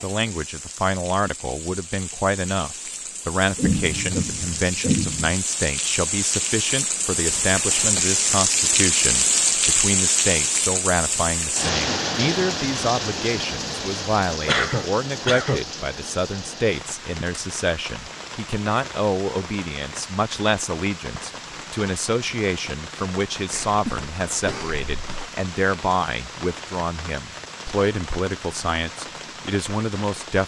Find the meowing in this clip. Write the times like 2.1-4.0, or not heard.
not heard.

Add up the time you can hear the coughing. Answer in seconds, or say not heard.
5 s.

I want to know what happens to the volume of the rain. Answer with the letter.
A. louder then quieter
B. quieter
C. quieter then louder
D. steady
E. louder
A.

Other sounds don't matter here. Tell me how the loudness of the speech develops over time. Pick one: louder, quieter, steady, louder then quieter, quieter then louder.
steady.